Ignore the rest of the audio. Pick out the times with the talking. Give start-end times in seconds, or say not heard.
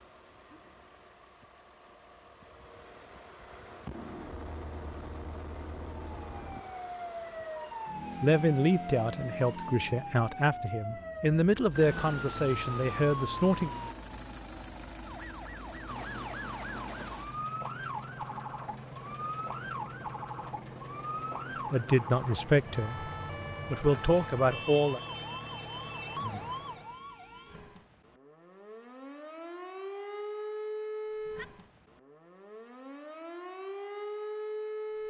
8.2-13.7, 21.7-25.0.